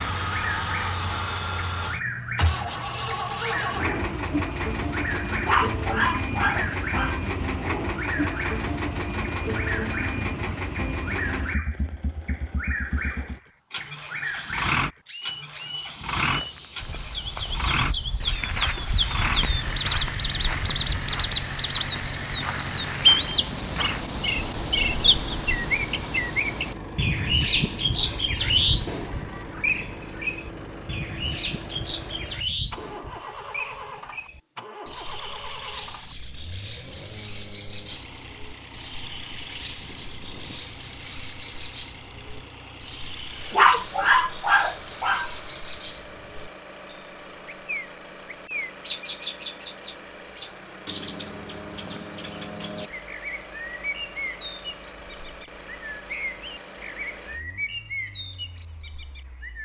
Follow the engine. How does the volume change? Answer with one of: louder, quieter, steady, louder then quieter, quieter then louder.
quieter.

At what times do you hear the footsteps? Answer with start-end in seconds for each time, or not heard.
16.2-24.1.